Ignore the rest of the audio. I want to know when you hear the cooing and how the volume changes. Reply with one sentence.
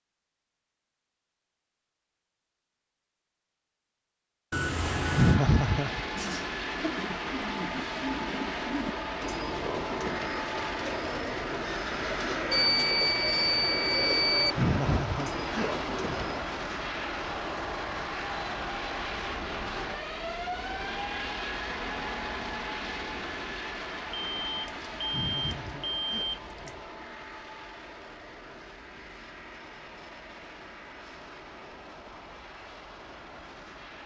You can hear the cooing from 6.2 to 16.4 s, at a steady volume.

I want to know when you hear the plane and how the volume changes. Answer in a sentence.
The plane can be heard from 4.6 to 34.0 s, getting quieter.